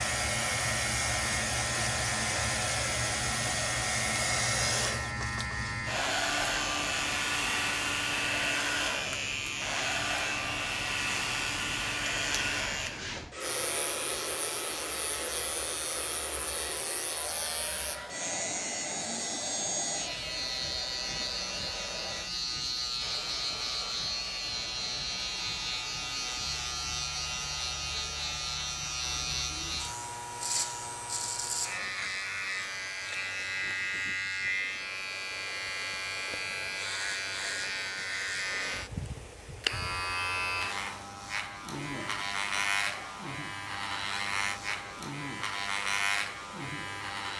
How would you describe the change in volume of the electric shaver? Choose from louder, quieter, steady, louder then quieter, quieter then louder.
steady.